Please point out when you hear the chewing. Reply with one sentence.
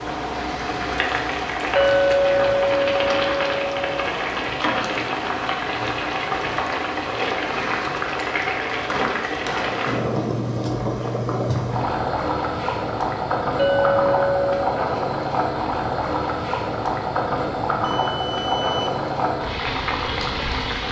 The chewing can't be heard in this clip.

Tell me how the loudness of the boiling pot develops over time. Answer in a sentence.
The volume of the boiling pot stays about the same.